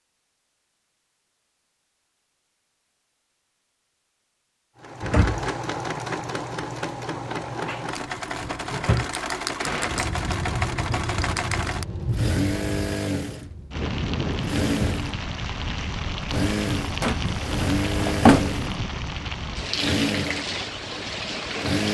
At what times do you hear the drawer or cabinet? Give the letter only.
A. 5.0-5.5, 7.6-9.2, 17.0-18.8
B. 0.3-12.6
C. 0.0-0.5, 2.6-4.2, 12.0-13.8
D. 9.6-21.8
A.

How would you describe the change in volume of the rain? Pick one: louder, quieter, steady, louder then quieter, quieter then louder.
steady.